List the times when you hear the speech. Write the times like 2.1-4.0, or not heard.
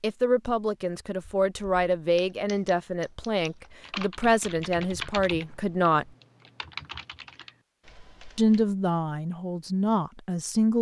0.0-6.0, 8.3-10.7.